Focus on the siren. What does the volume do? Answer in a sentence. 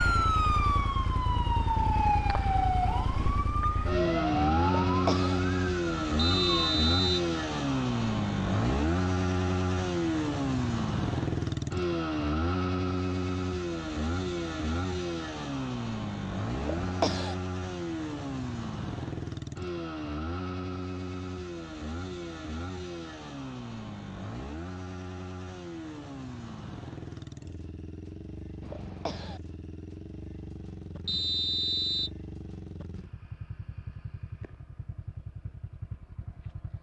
The loudness of the siren goes down.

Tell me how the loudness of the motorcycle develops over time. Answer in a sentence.
The loudness of the motorcycle goes down.